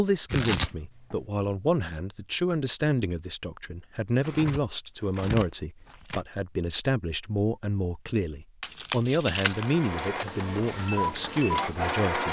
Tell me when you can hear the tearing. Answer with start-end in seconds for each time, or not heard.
0.3-1.1, 4.2-6.2, 8.6-10.2.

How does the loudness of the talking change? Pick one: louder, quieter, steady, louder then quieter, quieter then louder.
steady.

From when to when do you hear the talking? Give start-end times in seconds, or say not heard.
0.0-12.2.